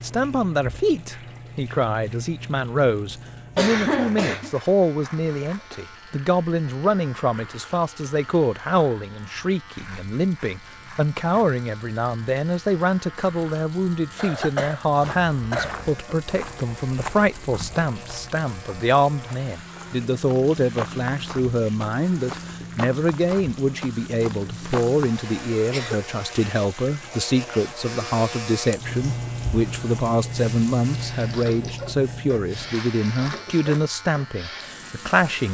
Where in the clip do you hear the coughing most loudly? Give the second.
4 s.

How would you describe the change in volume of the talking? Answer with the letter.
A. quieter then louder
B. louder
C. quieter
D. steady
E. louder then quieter
D.